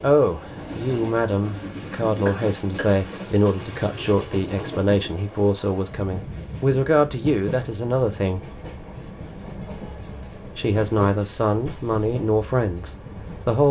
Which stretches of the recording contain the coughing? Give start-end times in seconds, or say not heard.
1.9-3.0.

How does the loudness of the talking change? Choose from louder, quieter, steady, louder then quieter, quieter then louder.
steady.